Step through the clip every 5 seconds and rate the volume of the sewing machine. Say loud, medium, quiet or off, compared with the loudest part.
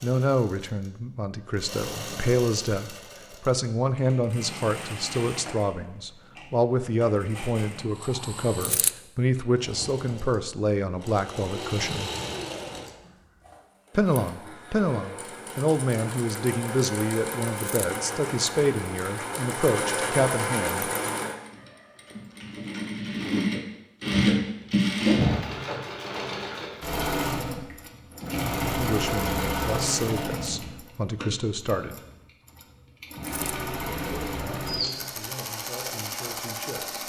quiet, quiet, medium, medium, loud, loud, medium, medium.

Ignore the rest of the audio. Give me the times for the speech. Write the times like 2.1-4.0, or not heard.
0.0-12.1, 13.9-20.9, 28.6-32.0, 34.0-37.0.